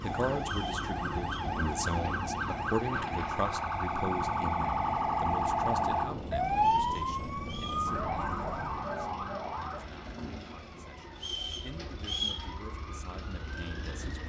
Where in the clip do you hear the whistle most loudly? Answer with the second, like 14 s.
12 s.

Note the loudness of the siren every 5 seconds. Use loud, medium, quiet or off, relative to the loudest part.
loud, loud, quiet.